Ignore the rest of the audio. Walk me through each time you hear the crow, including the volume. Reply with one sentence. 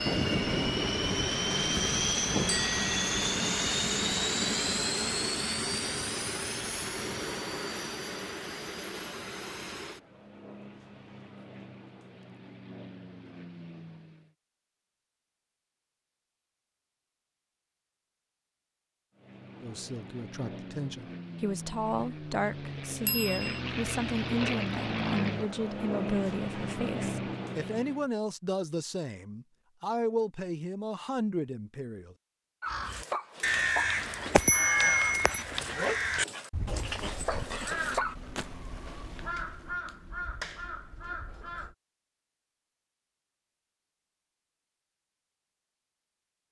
The crow can be heard from 32.6 to 41.8 s, getting quieter.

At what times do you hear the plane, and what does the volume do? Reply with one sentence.
You can hear the plane from 0.0 to 14.3 s, getting quieter; and from 19.1 to 28.1 s, getting louder.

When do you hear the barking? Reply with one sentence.
You can hear the barking from 32.6 to 38.1 s.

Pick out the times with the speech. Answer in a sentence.
You can hear the speech from 19.6 to 32.1 s.